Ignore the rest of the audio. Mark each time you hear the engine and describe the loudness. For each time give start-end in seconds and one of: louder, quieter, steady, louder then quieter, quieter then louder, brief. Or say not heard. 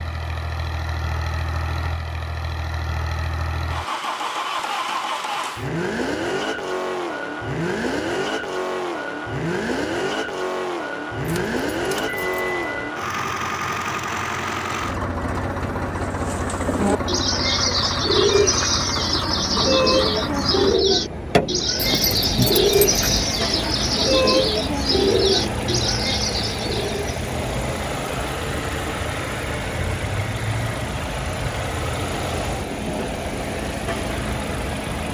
0.0-35.0 steady.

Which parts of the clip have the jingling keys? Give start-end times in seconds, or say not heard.
11.2-12.9, 21.8-23.3.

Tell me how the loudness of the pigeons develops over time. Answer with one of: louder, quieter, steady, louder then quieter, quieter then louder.
steady.